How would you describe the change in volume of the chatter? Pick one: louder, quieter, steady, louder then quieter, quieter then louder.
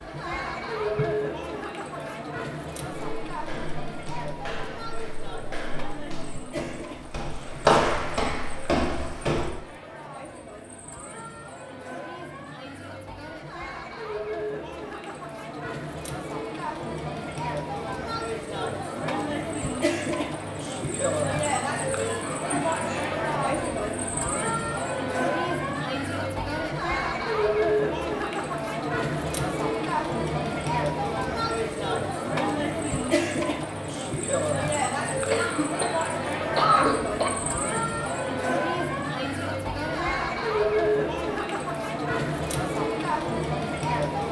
louder.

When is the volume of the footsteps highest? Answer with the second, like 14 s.
8 s.